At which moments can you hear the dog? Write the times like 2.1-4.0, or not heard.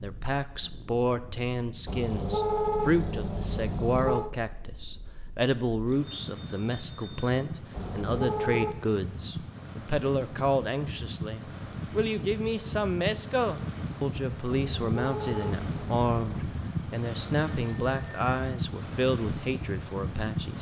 not heard.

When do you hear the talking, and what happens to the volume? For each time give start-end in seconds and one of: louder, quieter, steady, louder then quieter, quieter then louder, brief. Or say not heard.
0.0-20.5 steady.